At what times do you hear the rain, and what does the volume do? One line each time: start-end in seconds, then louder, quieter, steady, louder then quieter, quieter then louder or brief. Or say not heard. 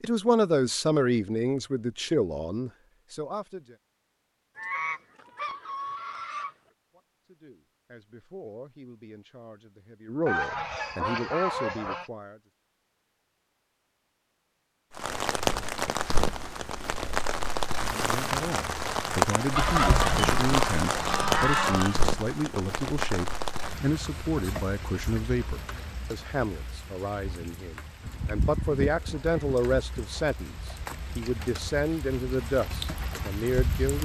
14.9-34.0 quieter then louder.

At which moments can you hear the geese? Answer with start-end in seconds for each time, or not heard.
4.5-6.5, 10.2-12.1, 19.6-22.1, 28.1-30.2.